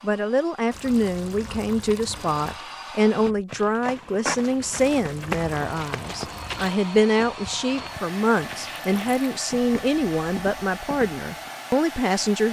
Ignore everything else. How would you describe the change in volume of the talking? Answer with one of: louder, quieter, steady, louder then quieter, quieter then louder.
steady.